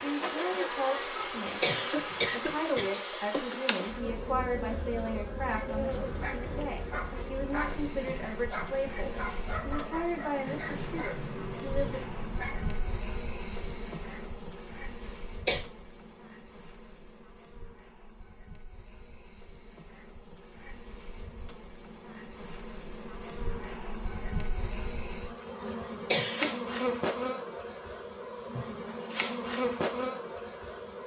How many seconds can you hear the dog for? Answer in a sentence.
The dog can be heard for 7 seconds in total.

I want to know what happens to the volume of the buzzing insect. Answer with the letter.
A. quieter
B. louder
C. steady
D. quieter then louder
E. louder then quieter
D.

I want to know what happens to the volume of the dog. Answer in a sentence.
The volume of the dog stays about the same.